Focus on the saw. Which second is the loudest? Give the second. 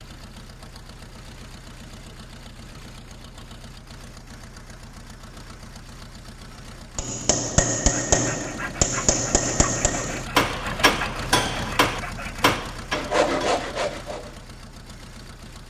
13 s.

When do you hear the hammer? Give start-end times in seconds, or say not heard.
6.8-13.7.